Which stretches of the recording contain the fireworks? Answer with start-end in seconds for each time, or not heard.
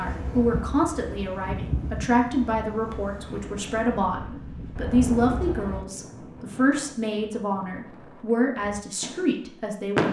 0.1-5.8, 8.6-10.0.